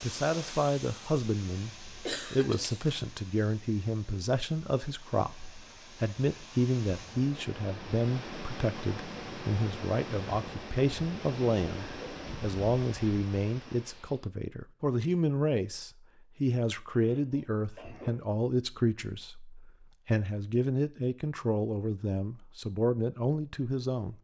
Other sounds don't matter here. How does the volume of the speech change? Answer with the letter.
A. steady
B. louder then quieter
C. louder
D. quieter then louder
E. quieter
A.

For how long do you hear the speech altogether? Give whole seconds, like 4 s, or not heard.
24 s.